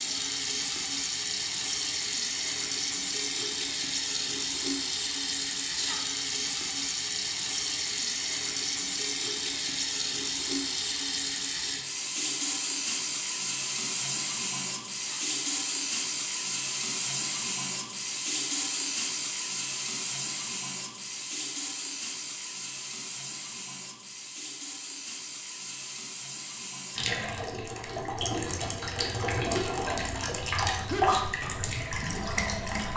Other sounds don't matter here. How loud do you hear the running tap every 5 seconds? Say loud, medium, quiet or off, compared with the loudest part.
loud, loud, loud, loud, medium, loud, loud.